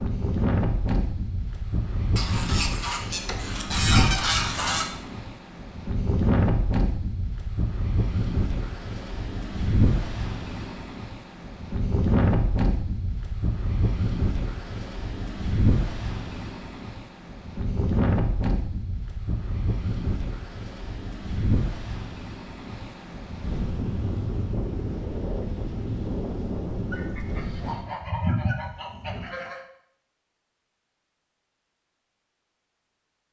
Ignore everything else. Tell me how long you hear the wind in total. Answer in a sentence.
You can hear the wind for 28 seconds altogether.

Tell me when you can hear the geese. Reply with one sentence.
You can hear the geese from 2.1 to 4.8 s and from 26.9 to 29.6 s.